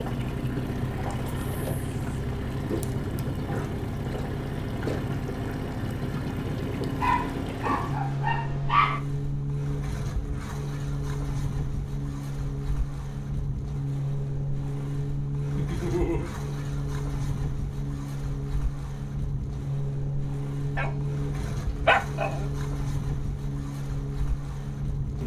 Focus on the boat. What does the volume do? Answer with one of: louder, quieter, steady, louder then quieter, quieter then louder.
steady.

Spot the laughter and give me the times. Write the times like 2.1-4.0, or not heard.
15.6-16.3.